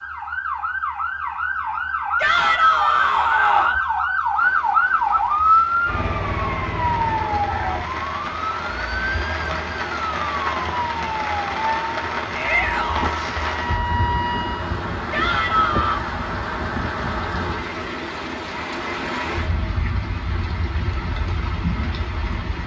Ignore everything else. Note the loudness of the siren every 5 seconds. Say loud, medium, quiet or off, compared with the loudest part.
loud, loud, medium, off, off.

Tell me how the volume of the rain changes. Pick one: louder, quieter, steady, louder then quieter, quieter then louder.
louder.